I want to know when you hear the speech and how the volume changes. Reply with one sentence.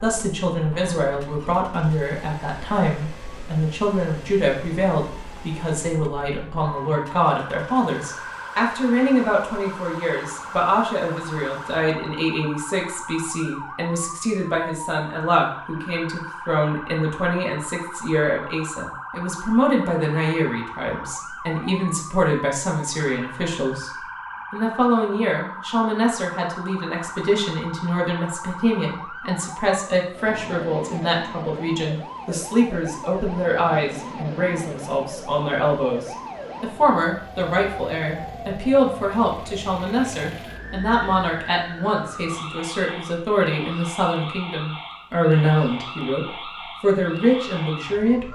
The speech can be heard from 0.0 to 23.9 s, at a steady volume; and from 24.5 to 48.3 s, at a steady volume.